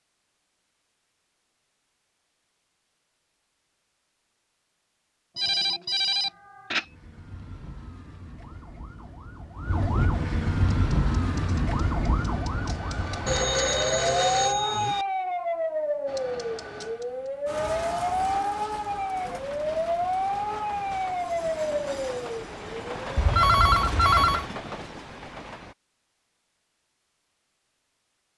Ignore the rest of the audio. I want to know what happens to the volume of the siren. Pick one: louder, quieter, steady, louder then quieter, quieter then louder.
louder.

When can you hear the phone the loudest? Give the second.
24 s.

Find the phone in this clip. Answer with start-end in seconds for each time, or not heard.
5.3-6.8, 13.2-15.1, 23.1-24.4.